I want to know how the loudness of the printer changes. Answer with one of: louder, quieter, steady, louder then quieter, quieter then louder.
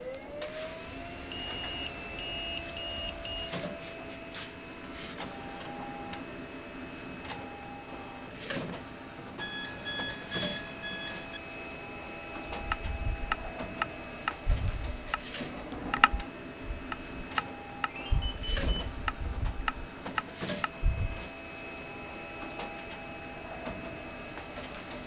steady.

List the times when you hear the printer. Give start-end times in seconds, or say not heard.
0.0-25.0.